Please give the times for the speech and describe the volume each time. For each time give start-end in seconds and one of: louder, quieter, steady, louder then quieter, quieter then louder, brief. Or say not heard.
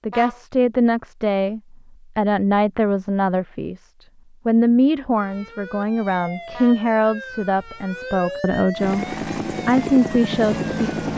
0.1-10.8 steady.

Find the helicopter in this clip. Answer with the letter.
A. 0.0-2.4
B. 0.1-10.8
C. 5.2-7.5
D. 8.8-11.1
D.